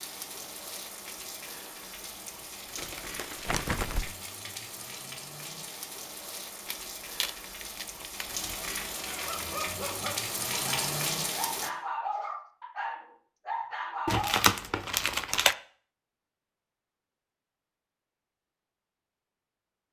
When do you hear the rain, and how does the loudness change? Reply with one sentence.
The rain can be heard from 0.0 to 11.7 s, getting louder.